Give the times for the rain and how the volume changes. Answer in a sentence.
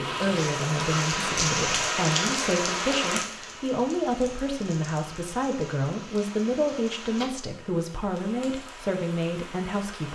The rain can be heard from 0.0 to 10.1 s, getting quieter.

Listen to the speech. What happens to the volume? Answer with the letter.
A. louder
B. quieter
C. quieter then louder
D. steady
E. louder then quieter
D.